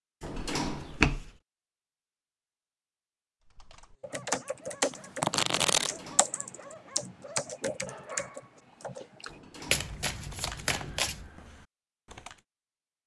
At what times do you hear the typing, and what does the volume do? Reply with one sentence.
The typing can be heard from 3.5 to 12.4 s, getting quieter.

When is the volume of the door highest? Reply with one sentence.
The volume of the door peaks at 1 second.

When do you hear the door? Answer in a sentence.
You can hear the door from 0.2 to 1.1 s, from 5.8 to 6.3 s and from 9.2 to 9.9 s.